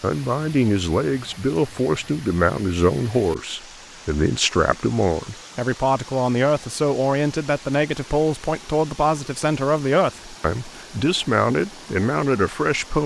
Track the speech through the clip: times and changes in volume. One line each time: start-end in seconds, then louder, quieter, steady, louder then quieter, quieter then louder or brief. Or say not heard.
0.0-13.0 steady.